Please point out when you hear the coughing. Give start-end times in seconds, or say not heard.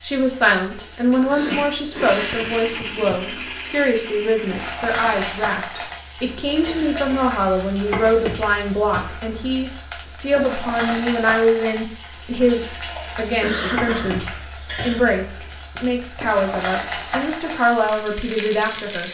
1.1-2.6, 6.6-7.3, 12.9-15.0.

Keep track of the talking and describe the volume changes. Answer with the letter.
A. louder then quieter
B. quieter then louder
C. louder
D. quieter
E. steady
E.